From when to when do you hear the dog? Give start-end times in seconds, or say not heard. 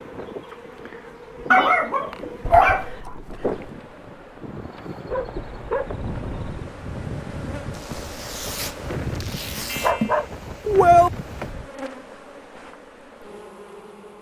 1.5-2.9, 5.1-6.7, 9.7-11.1.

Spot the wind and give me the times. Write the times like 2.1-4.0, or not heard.
0.0-11.7.